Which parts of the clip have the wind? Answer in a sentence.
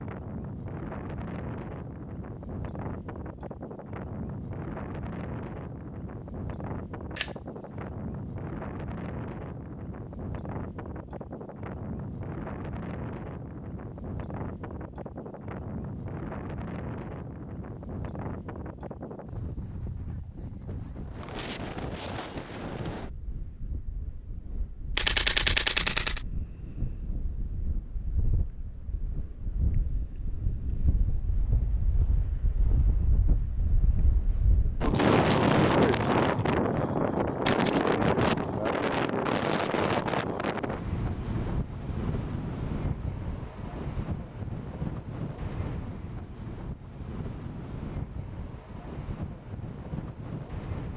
The wind can be heard from 0.0 to 50.9 s.